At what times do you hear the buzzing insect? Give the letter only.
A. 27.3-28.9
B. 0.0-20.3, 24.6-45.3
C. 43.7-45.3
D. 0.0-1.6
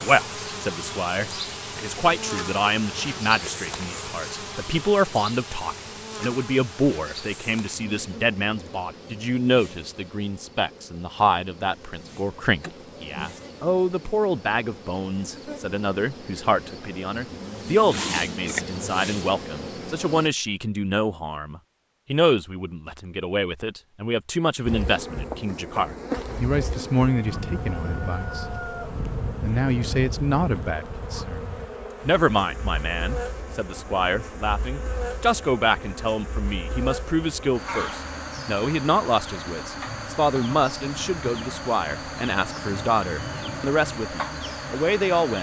B.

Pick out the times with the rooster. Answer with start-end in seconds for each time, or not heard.
27.3-28.9.